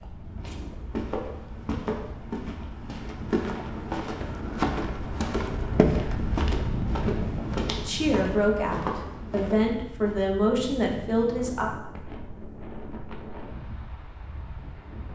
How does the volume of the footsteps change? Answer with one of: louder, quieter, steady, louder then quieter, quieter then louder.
louder then quieter.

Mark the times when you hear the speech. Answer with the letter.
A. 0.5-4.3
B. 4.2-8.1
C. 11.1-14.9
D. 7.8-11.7
D.